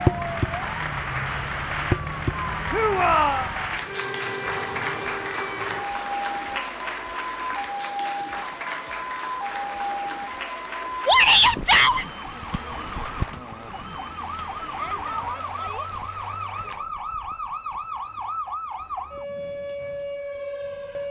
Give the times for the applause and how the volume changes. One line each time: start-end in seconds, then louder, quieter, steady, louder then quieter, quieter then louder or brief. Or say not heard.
0.0-16.9 quieter.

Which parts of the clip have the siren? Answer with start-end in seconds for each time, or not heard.
0.0-21.0.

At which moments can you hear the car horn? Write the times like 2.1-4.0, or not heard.
not heard.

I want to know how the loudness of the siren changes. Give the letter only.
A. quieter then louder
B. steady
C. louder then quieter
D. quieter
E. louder
B.